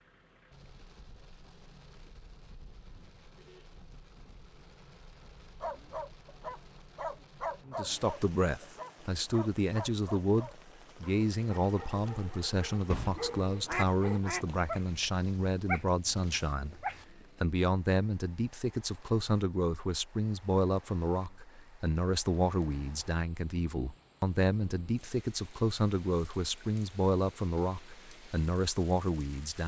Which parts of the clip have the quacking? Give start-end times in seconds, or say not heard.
12.9-14.8.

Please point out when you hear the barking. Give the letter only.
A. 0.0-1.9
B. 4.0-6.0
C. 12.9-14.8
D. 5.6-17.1
D.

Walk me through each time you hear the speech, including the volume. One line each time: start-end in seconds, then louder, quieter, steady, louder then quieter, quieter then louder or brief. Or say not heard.
7.7-29.6 steady.